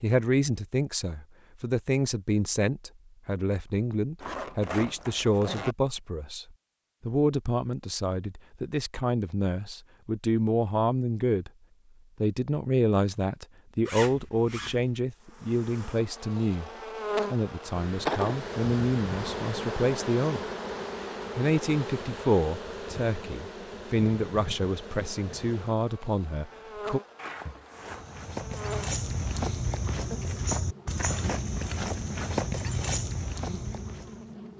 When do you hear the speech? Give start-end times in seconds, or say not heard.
0.0-6.5, 7.0-11.5, 12.2-16.7, 17.3-20.4, 21.4-27.0.